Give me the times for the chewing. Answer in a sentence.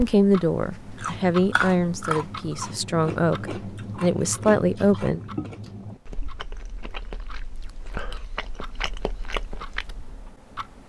You can hear the chewing from 0.7 to 10.3 s.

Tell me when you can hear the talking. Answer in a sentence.
The talking can be heard from 0.0 to 5.2 s.